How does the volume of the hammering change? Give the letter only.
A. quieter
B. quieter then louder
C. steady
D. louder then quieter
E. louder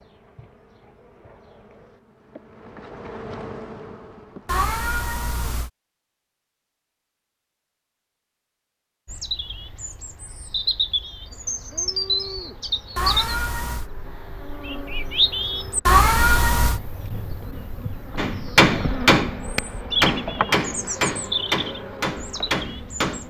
A.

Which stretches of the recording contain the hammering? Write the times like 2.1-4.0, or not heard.
18.1-23.2.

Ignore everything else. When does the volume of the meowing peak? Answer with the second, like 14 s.
16 s.